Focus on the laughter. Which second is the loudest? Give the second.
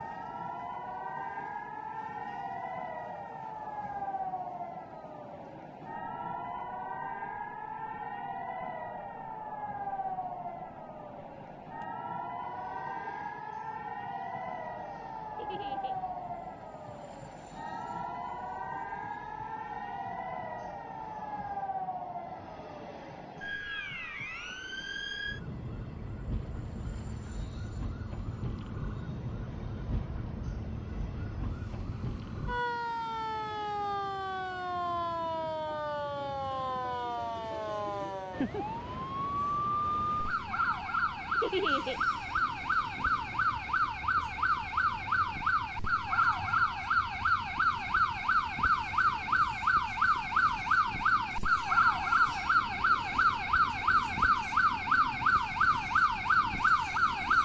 42 s.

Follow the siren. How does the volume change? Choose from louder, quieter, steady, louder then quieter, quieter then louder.
louder.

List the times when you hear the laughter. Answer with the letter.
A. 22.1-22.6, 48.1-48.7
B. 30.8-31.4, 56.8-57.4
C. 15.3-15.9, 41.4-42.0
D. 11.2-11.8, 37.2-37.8
C.